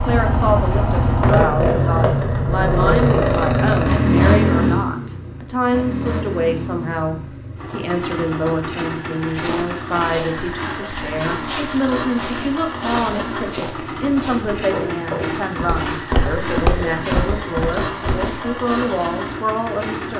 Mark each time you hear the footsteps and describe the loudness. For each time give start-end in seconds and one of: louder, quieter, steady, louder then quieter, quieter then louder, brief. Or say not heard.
9.2-18.6 louder.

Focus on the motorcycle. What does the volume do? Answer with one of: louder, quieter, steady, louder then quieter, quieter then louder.
quieter.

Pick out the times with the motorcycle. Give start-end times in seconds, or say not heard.
0.0-20.1.